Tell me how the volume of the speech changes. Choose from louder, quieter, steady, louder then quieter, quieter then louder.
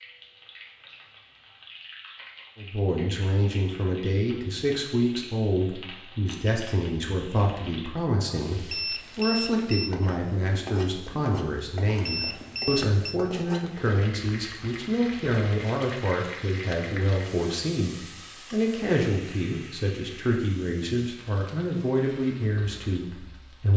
steady.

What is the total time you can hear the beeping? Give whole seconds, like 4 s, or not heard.
2 s.